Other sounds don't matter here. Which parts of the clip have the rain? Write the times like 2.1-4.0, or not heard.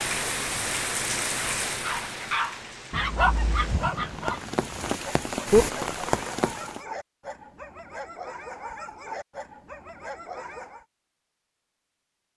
0.0-6.8.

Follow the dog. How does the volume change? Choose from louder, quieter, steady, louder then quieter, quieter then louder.
quieter.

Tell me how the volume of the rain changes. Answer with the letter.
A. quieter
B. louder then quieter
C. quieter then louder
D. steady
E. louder
C.